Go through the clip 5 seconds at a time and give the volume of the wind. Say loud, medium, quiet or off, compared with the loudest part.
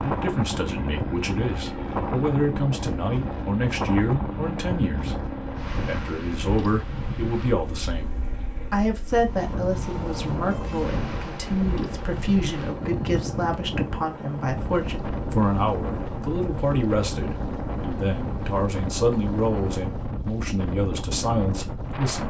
loud, medium, loud, loud, loud.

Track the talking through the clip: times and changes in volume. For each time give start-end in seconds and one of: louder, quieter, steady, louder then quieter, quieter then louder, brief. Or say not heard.
0.0-22.2 steady.